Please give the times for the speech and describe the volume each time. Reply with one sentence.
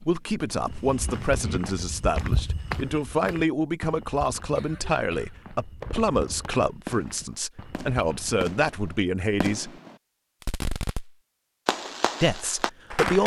You can hear the speech from 0.0 to 9.8 s, at a steady volume; and briefly from 12.2 to 13.2 s.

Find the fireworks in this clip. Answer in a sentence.
The fireworks can be heard from 0.0 to 1.8 s and from 5.8 to 13.2 s.